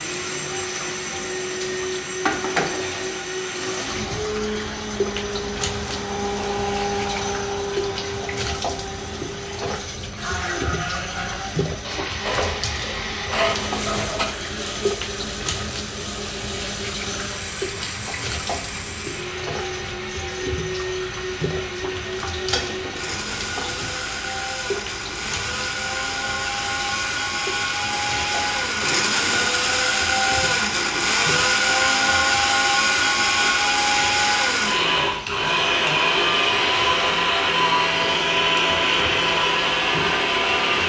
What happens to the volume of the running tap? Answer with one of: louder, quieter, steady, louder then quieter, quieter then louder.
quieter.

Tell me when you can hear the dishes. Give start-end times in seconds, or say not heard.
12.2-14.2, 22.3-23.9.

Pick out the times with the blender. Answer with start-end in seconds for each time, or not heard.
0.0-40.8.